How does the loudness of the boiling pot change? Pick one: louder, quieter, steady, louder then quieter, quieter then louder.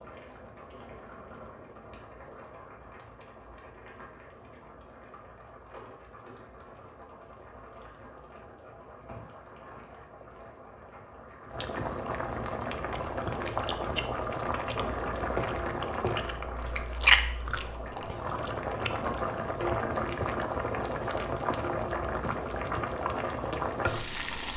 louder.